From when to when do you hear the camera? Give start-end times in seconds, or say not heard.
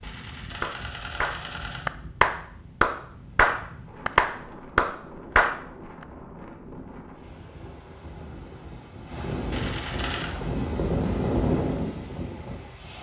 0.0-1.9, 9.5-10.3.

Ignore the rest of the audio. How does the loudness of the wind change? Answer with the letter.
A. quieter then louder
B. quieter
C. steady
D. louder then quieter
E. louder
E.